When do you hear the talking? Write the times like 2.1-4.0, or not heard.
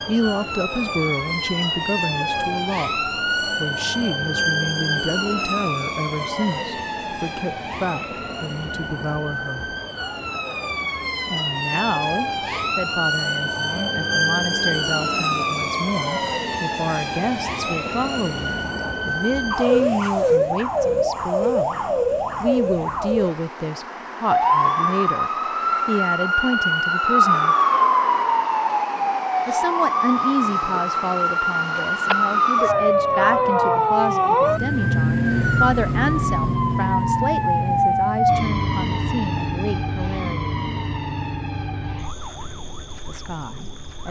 0.1-9.7, 11.2-21.8, 22.4-27.6, 29.4-40.5, 43.0-44.0.